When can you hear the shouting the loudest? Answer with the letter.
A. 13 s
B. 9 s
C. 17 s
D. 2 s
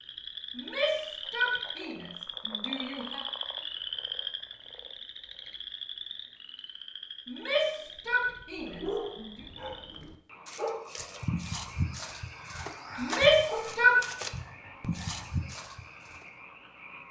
A.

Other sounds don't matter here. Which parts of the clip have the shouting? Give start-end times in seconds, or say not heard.
0.6-3.2, 7.2-9.3, 12.9-13.9.